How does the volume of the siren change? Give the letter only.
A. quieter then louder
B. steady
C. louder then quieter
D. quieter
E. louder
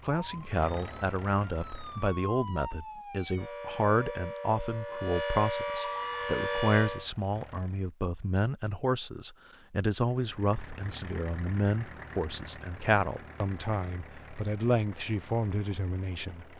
E.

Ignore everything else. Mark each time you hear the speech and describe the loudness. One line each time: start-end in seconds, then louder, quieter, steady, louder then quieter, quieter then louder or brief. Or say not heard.
0.0-16.4 steady.